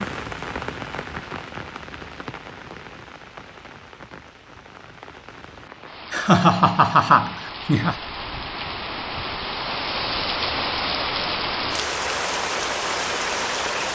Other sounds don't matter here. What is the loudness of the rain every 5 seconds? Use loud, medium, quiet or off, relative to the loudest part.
medium, medium, loud.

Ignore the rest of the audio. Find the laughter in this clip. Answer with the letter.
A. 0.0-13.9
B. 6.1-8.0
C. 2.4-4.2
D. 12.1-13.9
B.